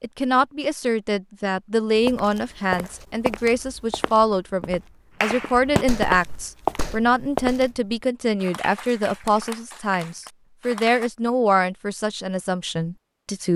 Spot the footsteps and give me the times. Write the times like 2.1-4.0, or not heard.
1.9-7.7.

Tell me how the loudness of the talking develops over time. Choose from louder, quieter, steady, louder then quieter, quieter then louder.
steady.